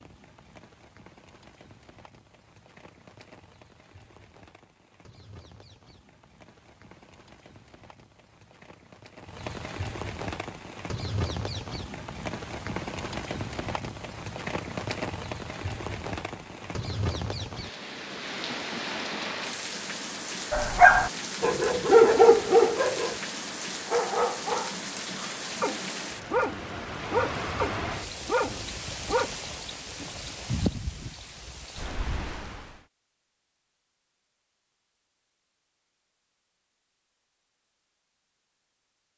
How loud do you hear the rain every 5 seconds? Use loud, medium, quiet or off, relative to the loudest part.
quiet, medium, loud, loud, loud, loud, loud, off.